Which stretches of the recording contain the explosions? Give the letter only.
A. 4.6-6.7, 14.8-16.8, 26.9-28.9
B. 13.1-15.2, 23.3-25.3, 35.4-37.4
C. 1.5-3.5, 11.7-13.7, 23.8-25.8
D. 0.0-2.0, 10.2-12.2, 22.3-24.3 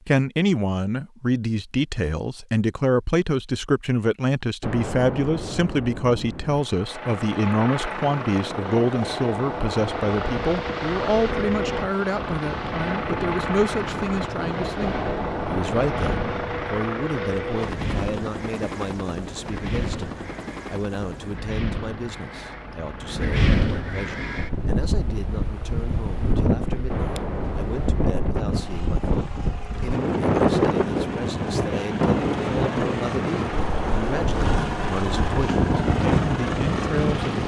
A.